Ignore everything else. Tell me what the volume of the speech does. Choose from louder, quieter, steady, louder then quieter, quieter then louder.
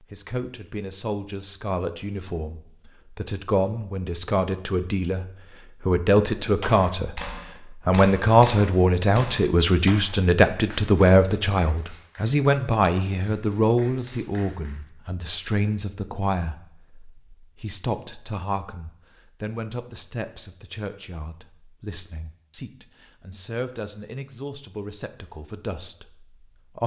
louder then quieter.